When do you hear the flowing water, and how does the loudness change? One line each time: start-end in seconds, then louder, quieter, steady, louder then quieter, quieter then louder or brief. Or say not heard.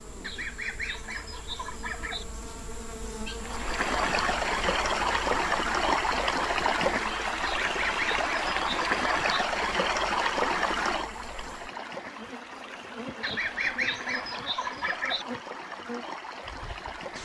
3.4-17.2 quieter.